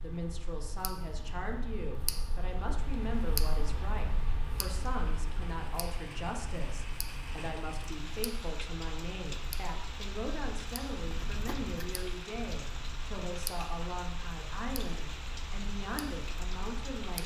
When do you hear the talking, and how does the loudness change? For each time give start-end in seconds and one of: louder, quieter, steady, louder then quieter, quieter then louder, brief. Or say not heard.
0.0-17.2 steady.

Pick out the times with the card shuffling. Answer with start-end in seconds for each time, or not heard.
11.0-12.1.